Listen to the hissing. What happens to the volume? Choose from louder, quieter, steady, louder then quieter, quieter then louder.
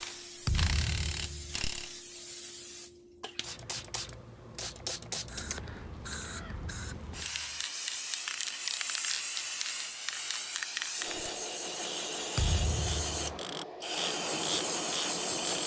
louder.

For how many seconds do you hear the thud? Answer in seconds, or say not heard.
3 s.